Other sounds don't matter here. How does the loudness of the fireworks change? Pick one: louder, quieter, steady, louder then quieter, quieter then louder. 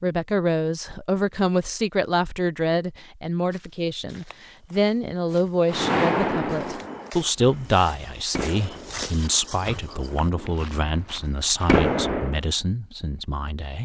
quieter then louder.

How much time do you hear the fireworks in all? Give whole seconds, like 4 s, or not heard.
7 s.